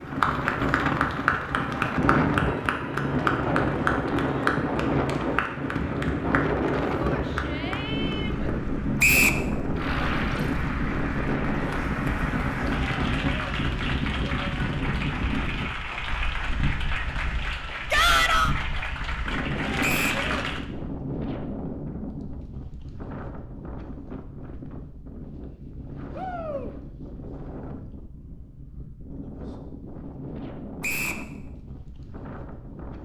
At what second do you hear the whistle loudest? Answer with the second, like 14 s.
9 s.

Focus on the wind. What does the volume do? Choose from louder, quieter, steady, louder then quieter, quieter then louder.
quieter.